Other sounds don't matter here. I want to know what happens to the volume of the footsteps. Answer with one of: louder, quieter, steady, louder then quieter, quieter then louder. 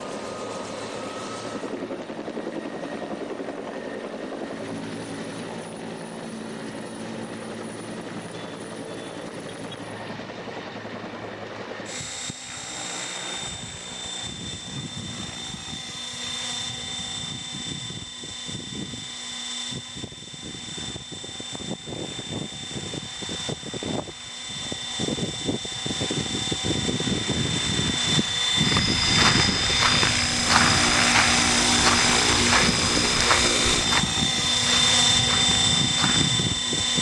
quieter.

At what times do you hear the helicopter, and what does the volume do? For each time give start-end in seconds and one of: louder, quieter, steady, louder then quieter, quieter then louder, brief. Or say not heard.
0.0-36.9 louder.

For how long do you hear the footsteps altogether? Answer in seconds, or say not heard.
8 s.